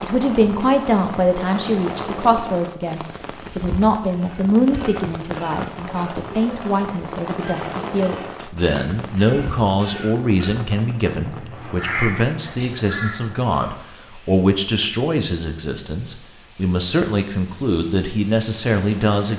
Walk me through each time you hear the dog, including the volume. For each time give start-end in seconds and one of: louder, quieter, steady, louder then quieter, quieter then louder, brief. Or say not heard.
not heard.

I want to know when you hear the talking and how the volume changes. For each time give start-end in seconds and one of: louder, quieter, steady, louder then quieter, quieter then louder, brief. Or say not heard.
0.0-19.3 steady.